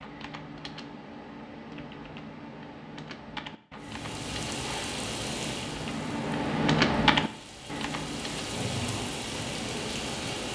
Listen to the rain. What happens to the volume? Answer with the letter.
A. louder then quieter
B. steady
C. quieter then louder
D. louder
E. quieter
C.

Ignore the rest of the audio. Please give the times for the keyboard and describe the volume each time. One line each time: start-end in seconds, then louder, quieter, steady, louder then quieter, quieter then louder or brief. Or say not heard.
0.0-10.4 louder then quieter.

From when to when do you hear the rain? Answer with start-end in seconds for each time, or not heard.
3.8-10.4.